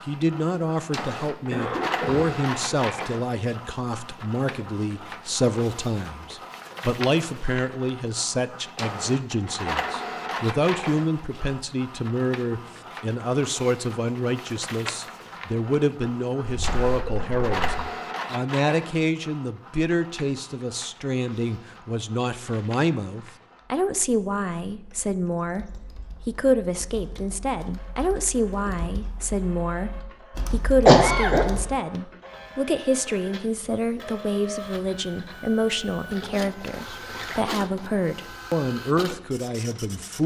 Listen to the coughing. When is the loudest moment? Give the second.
31 s.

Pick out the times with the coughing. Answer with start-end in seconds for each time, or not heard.
1.5-2.3, 16.4-17.5, 30.9-31.4.